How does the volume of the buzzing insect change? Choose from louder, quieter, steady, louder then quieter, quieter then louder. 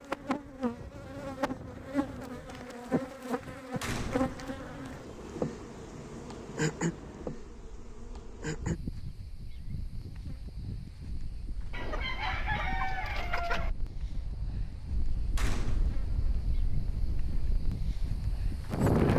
quieter.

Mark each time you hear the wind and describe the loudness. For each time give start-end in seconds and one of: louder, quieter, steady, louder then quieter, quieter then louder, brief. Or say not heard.
0.0-19.1 quieter then louder.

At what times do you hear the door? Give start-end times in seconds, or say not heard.
3.8-4.4, 15.3-16.1.